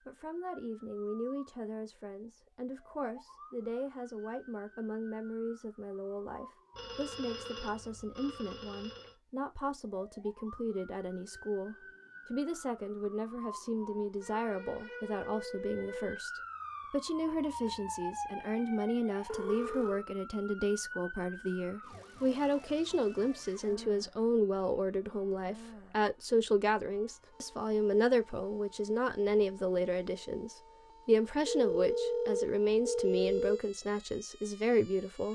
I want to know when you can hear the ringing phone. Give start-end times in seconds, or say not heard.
6.8-9.2, 19.2-20.1, 31.4-33.6.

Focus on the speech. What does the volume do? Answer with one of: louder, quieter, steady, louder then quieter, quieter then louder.
louder.